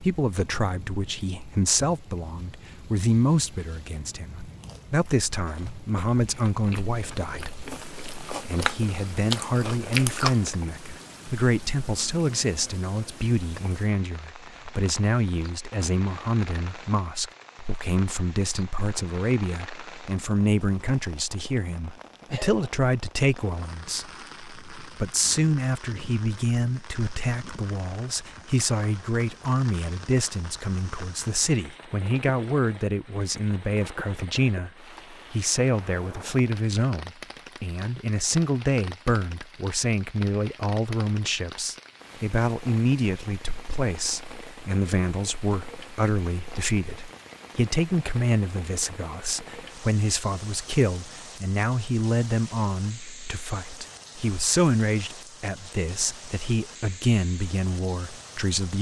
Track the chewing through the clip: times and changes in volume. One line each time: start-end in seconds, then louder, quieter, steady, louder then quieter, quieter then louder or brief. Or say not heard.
4.5-10.5 louder.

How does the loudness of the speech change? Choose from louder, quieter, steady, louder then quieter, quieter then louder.
steady.